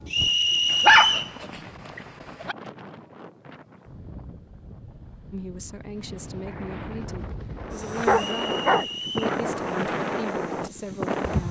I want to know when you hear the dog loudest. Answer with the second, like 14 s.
1 s.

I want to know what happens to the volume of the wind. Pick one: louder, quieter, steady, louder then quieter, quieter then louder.
louder.